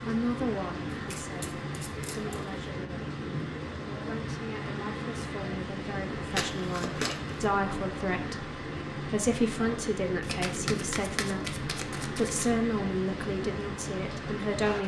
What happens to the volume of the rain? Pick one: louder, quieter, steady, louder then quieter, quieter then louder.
steady.